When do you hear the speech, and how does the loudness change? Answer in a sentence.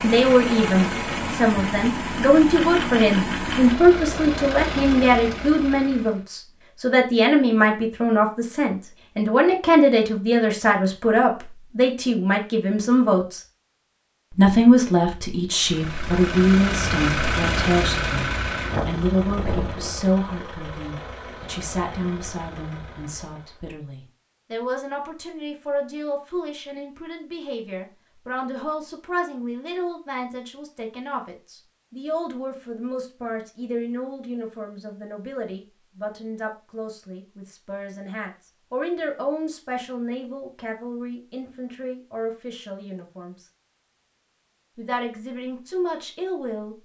You can hear the speech from 0.0 to 13.4 s, at a steady volume; from 14.3 to 43.5 s, getting quieter; and briefly from 44.8 to 46.7 s.